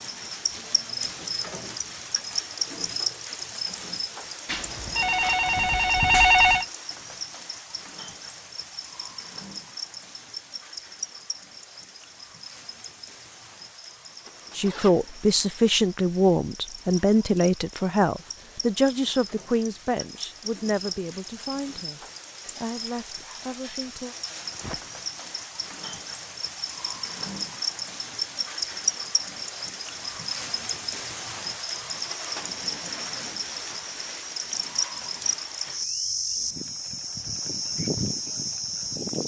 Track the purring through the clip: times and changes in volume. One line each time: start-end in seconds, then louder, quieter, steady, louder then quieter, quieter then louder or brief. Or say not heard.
not heard.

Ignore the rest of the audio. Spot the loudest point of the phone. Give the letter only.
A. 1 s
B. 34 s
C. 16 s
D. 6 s
D.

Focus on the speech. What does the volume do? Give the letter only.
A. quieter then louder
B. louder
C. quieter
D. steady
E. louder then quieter
C.